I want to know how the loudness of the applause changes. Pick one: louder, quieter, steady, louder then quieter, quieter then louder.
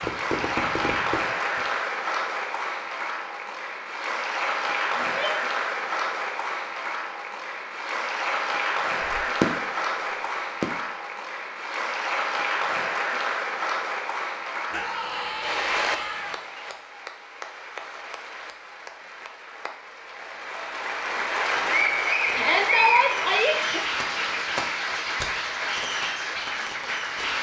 quieter then louder.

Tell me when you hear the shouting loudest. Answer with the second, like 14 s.
23 s.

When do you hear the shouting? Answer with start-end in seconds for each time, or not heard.
5.0-5.5, 14.7-16.4, 22.3-23.8.